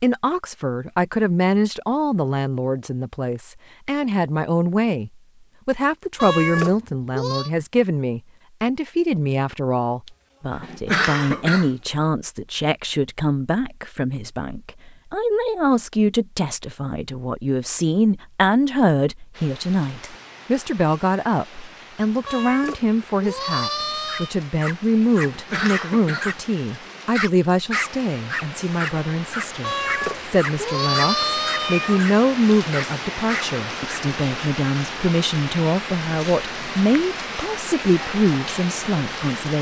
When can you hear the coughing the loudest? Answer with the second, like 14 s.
11 s.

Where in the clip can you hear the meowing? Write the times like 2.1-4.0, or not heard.
6.2-7.5, 22.2-24.3, 29.6-32.0.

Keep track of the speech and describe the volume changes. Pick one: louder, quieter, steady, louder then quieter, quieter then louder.
steady.